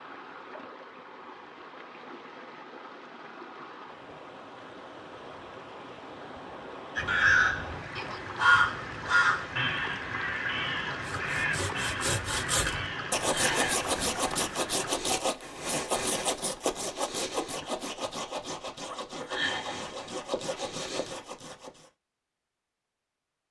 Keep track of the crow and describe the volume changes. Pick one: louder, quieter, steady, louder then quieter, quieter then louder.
quieter.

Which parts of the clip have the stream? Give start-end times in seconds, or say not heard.
0.0-15.1.